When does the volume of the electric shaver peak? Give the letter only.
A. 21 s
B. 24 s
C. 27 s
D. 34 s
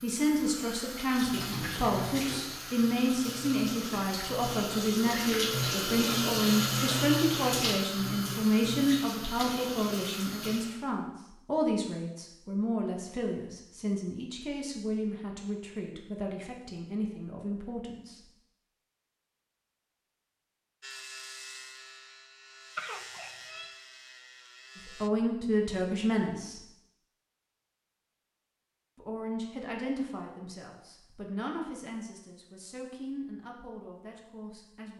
A.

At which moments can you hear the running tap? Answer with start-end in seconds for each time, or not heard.
0.0-10.8.